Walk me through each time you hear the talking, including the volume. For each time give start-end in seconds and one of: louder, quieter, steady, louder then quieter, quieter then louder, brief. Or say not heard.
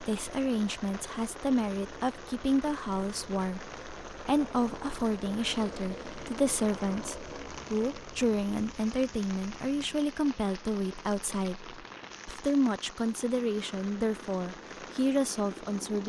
0.0-16.0 steady.